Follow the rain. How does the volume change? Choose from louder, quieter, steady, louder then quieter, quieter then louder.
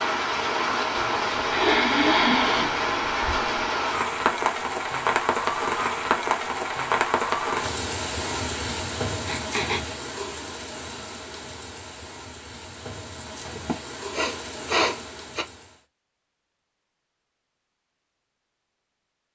quieter.